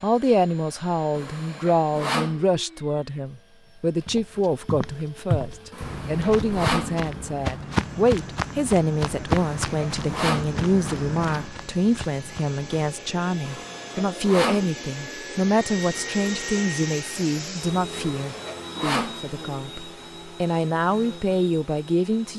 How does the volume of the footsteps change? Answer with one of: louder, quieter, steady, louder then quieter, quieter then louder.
quieter.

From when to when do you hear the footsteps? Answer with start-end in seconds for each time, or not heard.
4.0-12.9.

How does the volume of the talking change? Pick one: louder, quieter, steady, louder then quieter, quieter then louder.
steady.